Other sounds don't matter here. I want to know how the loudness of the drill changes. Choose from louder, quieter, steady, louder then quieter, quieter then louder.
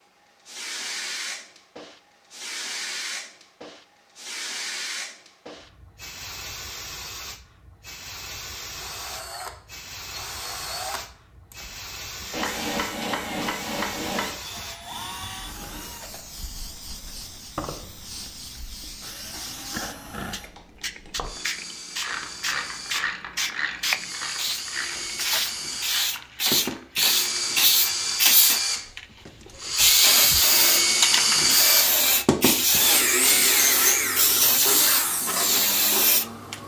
louder.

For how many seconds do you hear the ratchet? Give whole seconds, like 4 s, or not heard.
6 s.